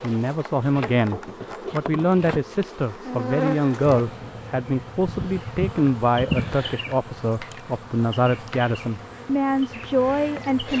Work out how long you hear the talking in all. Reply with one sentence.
The talking can be heard for 11 seconds in total.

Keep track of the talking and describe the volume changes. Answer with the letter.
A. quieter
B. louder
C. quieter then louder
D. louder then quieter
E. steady
E.